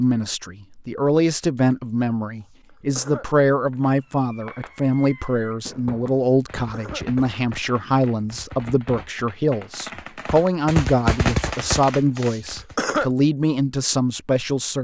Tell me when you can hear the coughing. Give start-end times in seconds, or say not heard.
2.4-3.5, 6.2-7.3, 12.2-13.1.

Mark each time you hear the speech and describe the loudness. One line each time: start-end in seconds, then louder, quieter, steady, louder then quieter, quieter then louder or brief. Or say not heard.
0.0-14.7 steady.